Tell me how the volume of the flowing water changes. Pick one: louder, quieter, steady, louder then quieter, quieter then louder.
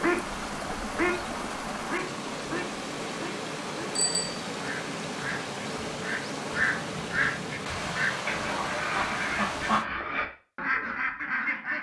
steady.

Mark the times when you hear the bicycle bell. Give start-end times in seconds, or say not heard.
4.0-4.5.